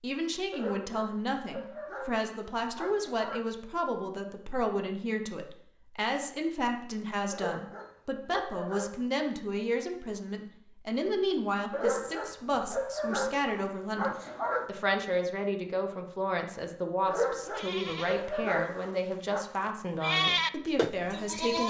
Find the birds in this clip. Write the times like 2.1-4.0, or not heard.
not heard.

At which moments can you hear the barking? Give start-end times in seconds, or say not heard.
0.5-3.5, 7.3-9.1, 11.7-14.7, 17.1-19.4.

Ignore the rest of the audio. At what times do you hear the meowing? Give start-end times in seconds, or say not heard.
not heard.